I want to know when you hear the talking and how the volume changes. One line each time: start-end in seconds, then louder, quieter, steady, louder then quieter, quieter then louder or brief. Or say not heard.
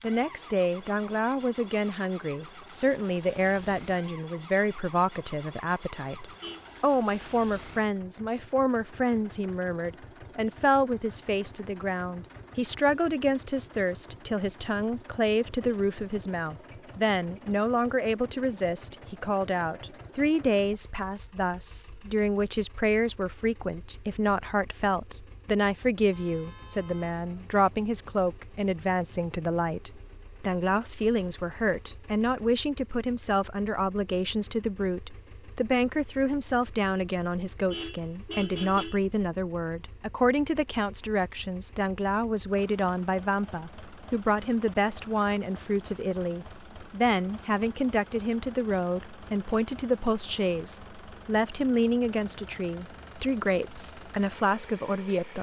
0.0-55.3 steady.